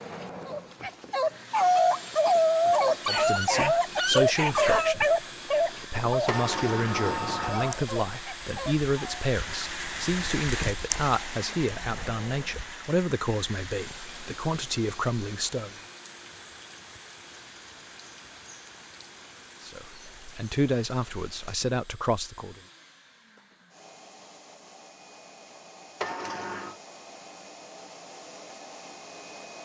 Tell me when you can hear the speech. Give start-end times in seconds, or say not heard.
3.0-15.7, 19.6-22.6.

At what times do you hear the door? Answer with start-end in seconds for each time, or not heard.
6.2-7.8, 26.0-26.8.